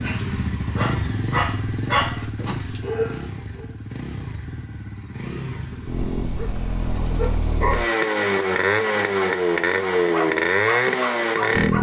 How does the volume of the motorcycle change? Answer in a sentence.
The loudness of the motorcycle goes down, then up.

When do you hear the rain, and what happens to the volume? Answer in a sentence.
The rain can't be heard in this clip.